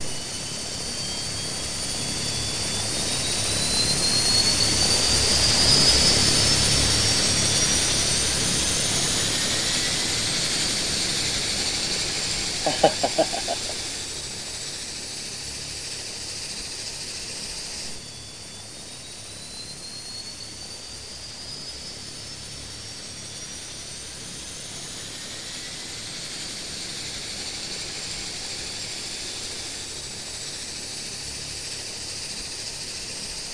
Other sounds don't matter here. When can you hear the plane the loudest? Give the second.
6 s.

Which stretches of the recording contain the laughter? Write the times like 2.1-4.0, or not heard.
12.7-13.8.